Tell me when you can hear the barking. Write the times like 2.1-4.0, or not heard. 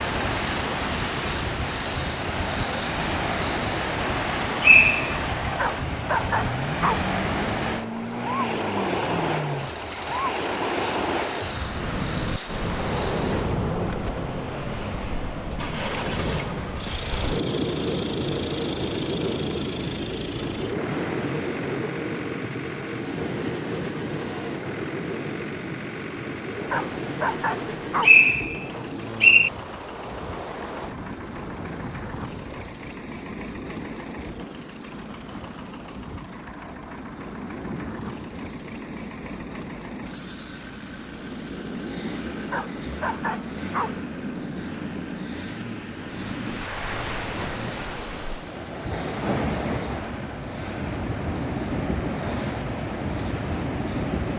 5.5-7.1, 26.7-28.2, 42.5-44.0.